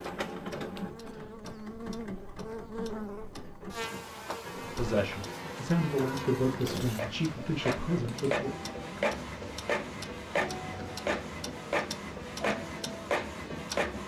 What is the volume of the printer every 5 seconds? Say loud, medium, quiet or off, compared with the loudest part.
medium, loud, loud.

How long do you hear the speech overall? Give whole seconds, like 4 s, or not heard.
4 s.